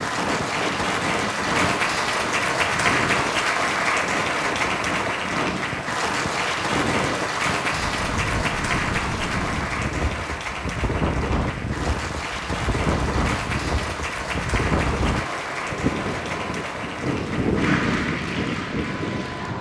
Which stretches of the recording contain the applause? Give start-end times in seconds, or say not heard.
0.0-19.5.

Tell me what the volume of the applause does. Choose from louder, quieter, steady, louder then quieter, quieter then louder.
quieter.